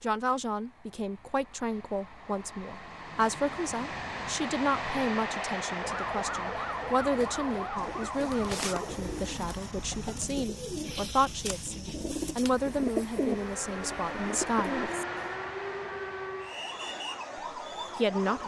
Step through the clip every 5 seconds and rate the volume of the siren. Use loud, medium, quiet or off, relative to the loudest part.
off, loud, loud, loud.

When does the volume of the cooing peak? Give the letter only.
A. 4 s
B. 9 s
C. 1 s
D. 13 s
D.